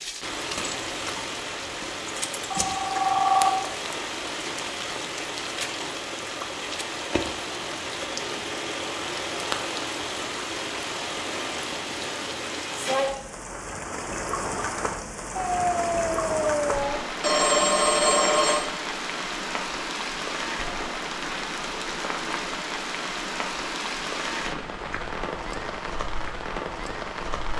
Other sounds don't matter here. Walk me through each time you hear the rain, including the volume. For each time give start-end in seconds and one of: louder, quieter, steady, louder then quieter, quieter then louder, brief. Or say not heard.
0.0-27.5 steady.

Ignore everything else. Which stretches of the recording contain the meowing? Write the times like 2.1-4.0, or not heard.
15.3-17.0.